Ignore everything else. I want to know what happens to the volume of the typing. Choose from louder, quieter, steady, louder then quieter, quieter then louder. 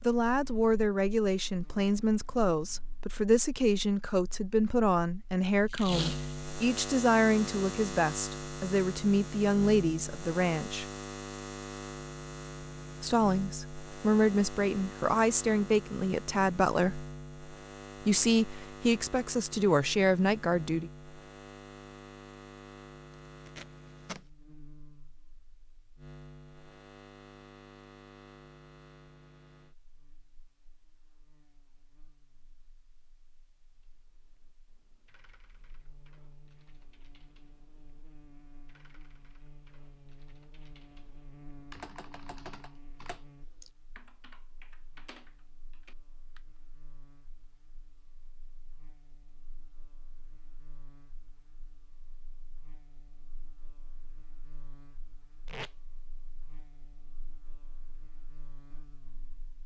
louder then quieter.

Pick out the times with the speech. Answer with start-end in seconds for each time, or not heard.
0.0-10.8, 13.0-17.1, 18.0-20.9.